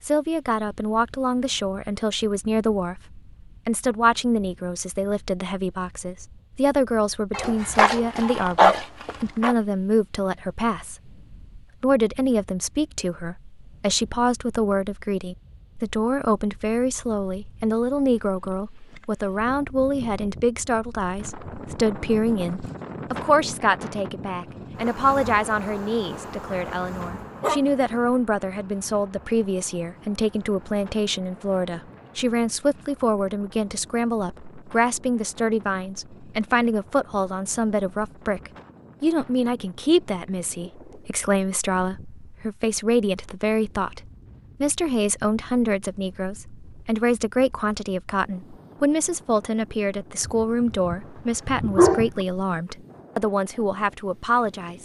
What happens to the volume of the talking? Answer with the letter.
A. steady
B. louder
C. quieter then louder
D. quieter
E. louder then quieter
A.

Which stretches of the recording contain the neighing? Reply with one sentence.
The neighing can't be heard in this clip.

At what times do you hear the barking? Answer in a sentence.
You can hear the barking from 7.3 to 9.6 s, from 26.6 to 28.0 s and from 50.2 to 52.2 s.